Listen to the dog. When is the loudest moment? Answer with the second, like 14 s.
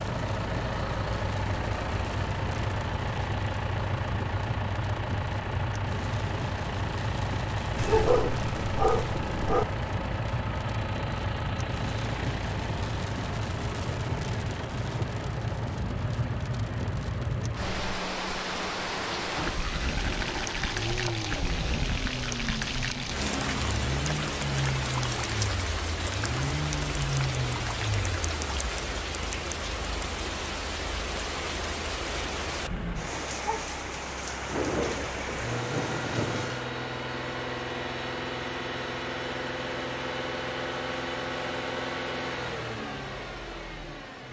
8 s.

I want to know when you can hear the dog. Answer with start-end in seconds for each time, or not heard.
7.8-9.7.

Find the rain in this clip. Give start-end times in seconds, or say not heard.
0.0-36.7.